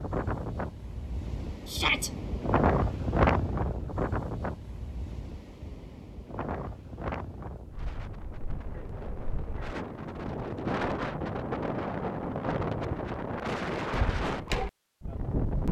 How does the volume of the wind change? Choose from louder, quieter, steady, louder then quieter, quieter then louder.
quieter then louder.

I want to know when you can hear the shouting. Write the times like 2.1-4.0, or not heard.
1.6-2.1.